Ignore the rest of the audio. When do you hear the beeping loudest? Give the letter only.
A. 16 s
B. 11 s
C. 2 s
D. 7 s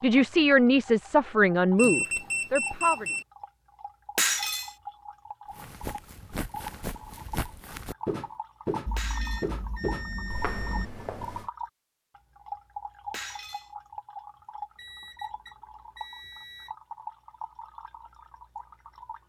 C.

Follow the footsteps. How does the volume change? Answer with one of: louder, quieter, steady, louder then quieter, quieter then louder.
louder then quieter.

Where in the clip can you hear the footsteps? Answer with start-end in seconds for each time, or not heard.
5.5-11.5.